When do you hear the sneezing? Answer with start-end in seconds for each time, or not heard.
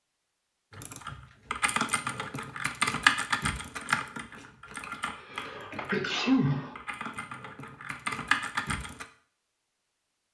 5.2-7.2.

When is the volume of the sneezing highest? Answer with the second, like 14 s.
6 s.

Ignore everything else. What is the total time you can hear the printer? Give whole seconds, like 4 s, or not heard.
not heard.